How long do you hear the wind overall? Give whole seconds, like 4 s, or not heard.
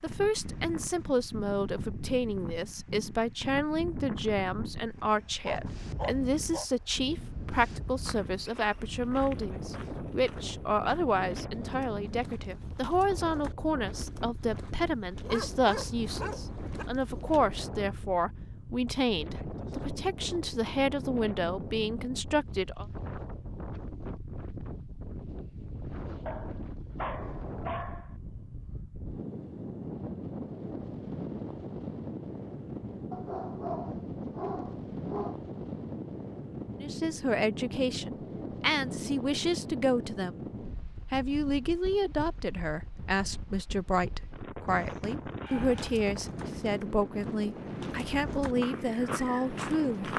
50 s.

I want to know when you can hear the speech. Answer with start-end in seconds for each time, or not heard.
0.0-22.9, 36.8-40.4, 41.1-50.1.